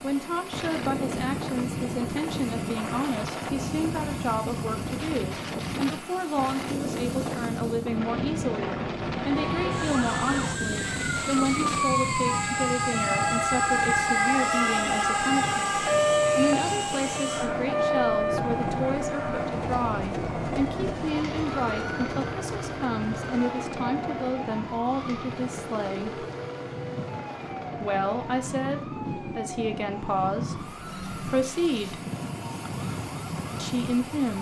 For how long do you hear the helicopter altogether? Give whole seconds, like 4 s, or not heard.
34 s.